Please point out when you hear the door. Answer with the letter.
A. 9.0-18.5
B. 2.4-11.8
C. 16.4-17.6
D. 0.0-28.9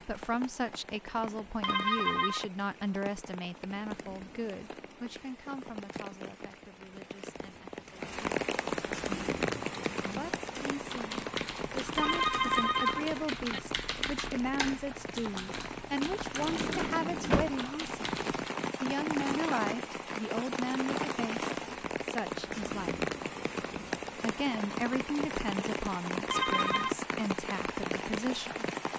C.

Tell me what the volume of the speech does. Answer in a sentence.
The volume of the speech goes down, then up.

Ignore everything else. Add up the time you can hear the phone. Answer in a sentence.
The phone can be heard for 3 seconds in total.